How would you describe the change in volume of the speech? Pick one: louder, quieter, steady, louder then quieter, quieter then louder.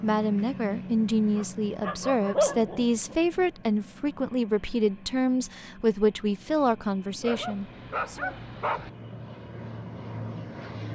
steady.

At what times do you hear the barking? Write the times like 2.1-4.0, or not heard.
1.4-3.1, 7.2-8.9.